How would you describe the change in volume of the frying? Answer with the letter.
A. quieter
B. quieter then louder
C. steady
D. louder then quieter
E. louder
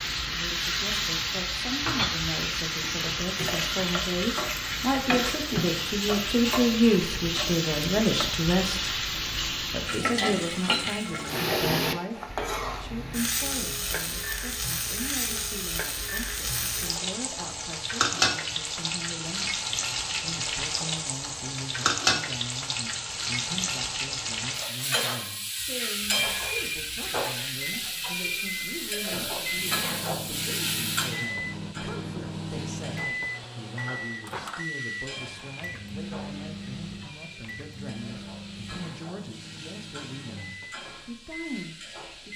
A.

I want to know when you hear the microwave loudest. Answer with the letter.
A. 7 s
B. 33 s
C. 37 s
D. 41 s
B.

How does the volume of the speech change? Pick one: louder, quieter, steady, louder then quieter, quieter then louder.
quieter.